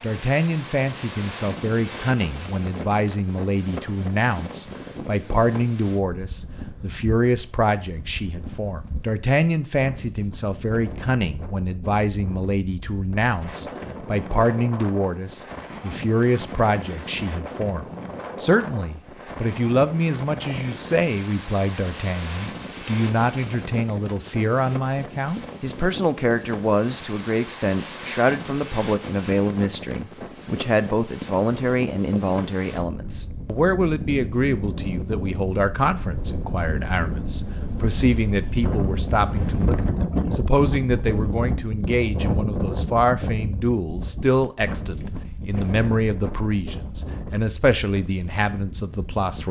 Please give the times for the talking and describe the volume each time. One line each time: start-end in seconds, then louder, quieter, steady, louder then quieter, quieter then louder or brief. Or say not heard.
0.0-49.4 steady.